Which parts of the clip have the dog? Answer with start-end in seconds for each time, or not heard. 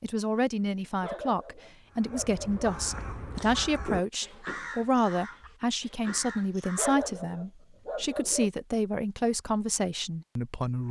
1.0-2.7, 6.8-8.5.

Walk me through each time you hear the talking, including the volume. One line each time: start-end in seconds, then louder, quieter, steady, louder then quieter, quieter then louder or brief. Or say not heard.
0.0-10.8 steady.